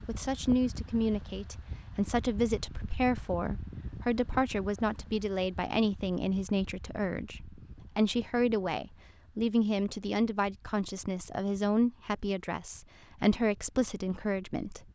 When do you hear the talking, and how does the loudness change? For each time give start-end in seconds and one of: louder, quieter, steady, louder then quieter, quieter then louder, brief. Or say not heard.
0.1-14.8 steady.